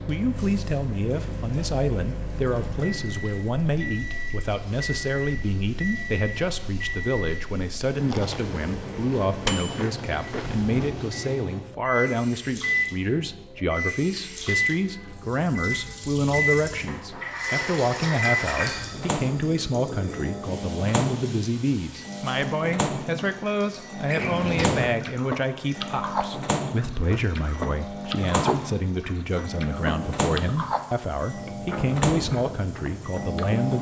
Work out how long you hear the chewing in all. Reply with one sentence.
You can hear the chewing for 11 seconds altogether.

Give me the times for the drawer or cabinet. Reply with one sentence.
The drawer or cabinet can be heard from 10.3 to 11.1 s and from 24.1 to 24.9 s.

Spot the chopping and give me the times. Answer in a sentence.
You can't hear the chopping here.